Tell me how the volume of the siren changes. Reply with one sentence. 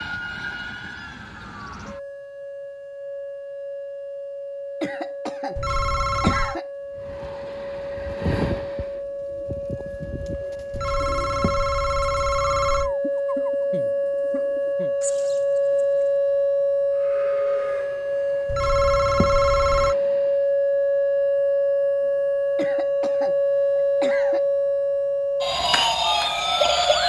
The loudness of the siren goes up.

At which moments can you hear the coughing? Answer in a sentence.
You can hear the coughing from 4.8 to 6.7 s, from 13.0 to 14.9 s and from 22.6 to 24.4 s.